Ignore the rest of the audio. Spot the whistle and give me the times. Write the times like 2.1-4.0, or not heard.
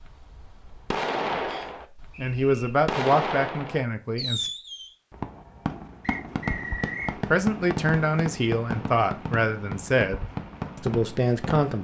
1.4-2.7, 6.0-7.2.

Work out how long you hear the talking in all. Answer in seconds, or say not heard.
7 s.